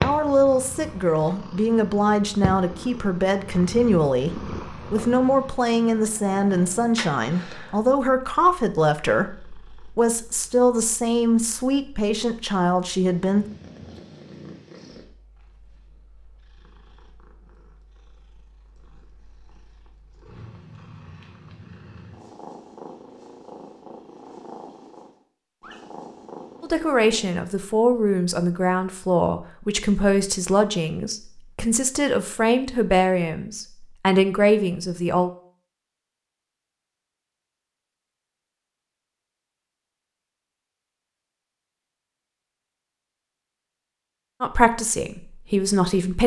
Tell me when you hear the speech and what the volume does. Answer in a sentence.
You can hear the speech from 0.0 to 13.4 s, at a steady volume; from 26.6 to 35.3 s, at a steady volume; and briefly from 44.4 to 46.2 s.